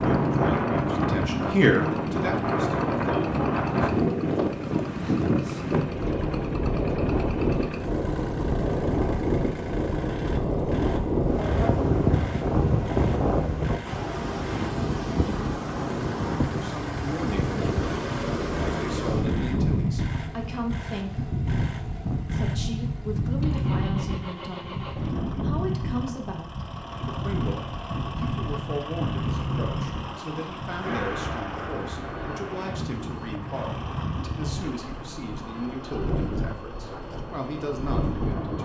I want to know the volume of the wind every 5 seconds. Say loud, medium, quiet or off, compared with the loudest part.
loud, loud, loud, loud, medium, medium, medium, medium.